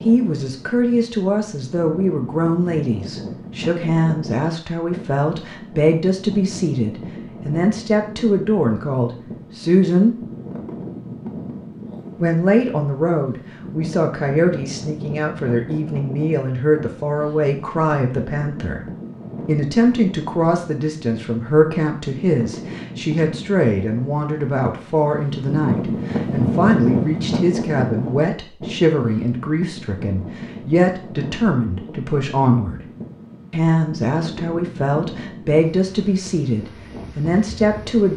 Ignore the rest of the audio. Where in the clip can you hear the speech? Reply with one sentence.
The speech can be heard from 0.0 to 10.2 s, from 12.2 to 18.8 s, from 19.4 to 32.9 s and from 33.5 to 38.1 s.